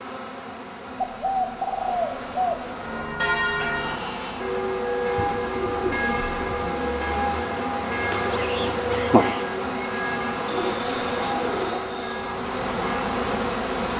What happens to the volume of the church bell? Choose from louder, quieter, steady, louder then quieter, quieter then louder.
quieter.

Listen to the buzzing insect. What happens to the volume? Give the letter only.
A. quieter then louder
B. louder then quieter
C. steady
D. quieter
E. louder
E.